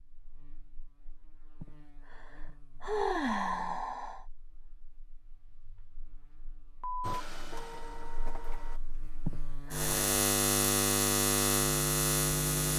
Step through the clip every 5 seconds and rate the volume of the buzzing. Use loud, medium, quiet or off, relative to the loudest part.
quiet, quiet, loud.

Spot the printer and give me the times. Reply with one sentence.
The printer can be heard from 7.0 to 8.8 s.